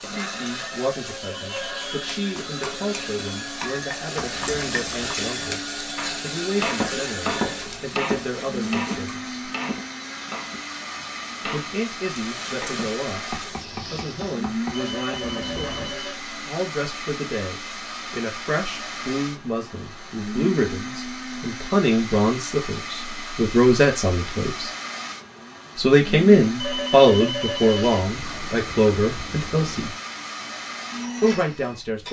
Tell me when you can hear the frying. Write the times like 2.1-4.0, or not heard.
0.0-9.2, 12.2-14.4.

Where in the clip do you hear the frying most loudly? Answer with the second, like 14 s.
5 s.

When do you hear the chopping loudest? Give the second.
7 s.